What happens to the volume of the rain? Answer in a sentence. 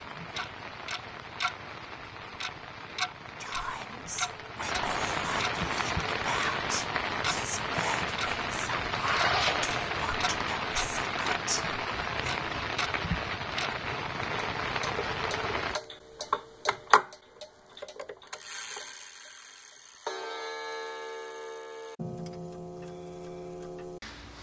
The loudness of the rain goes up.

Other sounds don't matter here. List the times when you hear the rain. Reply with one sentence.
The rain can be heard from 0.0 to 15.8 s.